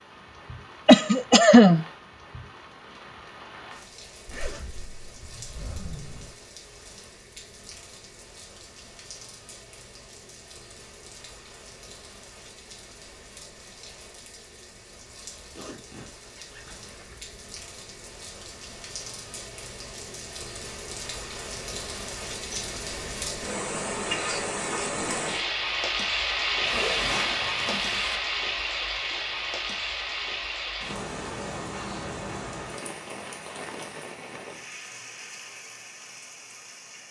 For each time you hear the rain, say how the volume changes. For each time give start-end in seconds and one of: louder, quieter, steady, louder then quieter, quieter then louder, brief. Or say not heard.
0.0-37.0 louder then quieter.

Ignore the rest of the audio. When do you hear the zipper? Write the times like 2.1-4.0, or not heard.
4.2-6.3, 15.6-17.3, 26.6-28.2.